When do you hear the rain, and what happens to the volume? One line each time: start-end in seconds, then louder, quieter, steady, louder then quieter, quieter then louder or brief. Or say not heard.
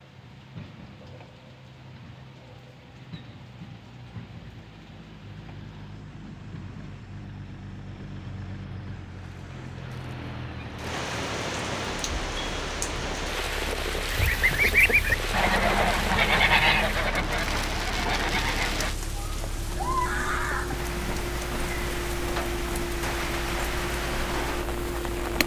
0.0-25.4 louder.